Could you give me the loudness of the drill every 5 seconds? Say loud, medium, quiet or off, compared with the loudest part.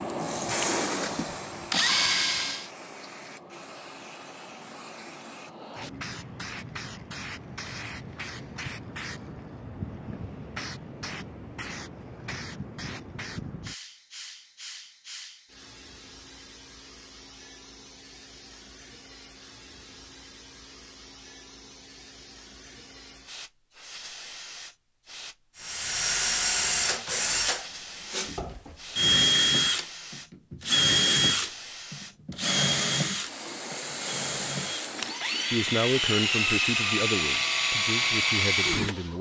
loud, off, off, off, off, loud, loud, loud.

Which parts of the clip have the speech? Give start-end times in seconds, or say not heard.
35.5-39.1.